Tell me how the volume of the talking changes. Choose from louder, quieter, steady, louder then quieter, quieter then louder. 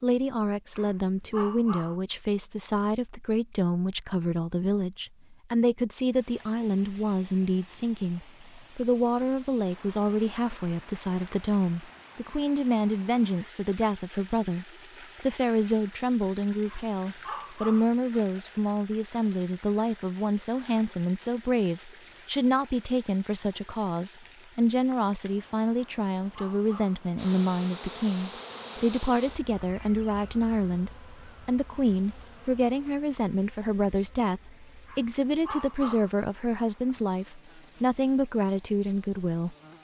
steady.